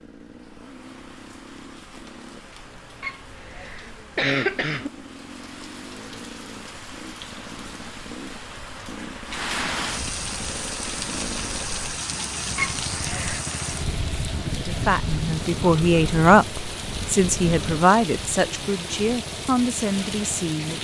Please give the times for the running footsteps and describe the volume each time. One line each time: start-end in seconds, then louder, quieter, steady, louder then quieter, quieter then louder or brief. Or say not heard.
not heard.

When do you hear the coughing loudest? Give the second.
4 s.